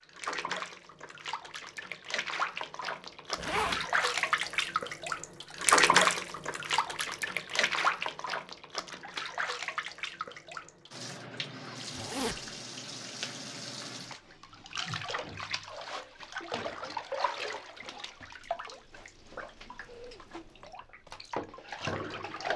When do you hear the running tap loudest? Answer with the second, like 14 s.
6 s.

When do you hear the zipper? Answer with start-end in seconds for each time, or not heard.
3.4-3.9, 11.9-12.4, 19.9-20.8.